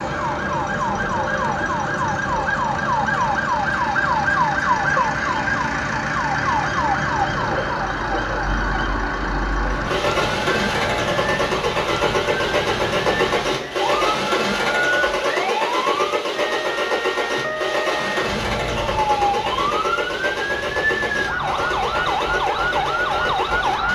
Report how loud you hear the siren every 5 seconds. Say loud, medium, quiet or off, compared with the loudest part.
loud, loud, medium, loud, loud.